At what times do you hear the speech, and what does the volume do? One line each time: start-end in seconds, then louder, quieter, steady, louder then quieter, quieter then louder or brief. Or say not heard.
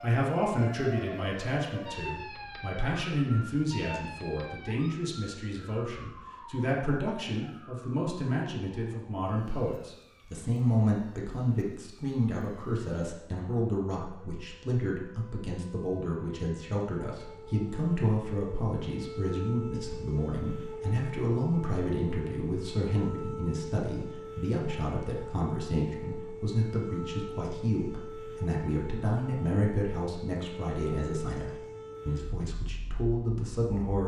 0.0-34.0 steady.